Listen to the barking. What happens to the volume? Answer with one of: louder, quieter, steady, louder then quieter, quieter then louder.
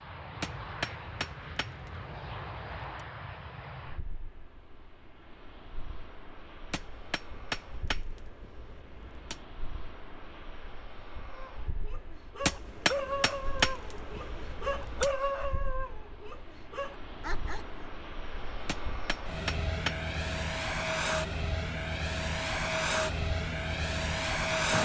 louder then quieter.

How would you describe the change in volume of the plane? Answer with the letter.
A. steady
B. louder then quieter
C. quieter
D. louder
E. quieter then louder
E.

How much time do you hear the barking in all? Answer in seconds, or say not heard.
7 s.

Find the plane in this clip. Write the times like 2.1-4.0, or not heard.
0.0-24.7.